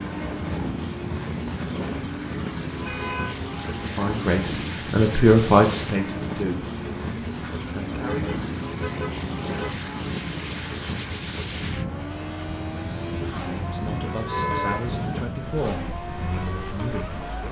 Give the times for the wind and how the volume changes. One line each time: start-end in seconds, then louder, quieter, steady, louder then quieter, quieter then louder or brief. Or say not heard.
0.0-17.4 steady.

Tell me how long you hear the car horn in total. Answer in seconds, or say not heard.
3 s.